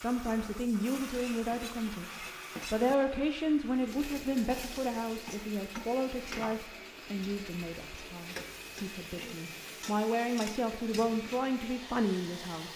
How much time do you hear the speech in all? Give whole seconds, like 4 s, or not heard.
13 s.